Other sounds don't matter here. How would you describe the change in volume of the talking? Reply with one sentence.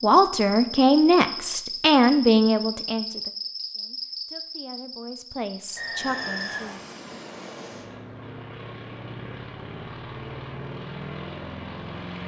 The volume of the talking goes down, then up.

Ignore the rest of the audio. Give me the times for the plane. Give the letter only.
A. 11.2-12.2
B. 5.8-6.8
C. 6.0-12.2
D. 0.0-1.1
C.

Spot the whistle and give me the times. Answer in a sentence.
The whistle can be heard from 5.8 to 6.8 s.